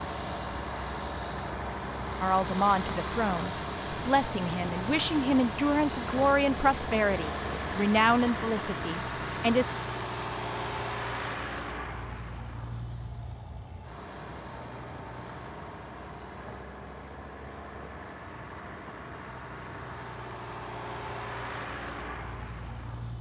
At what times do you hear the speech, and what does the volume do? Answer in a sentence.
The speech can be heard from 2.2 to 9.7 s, at a steady volume.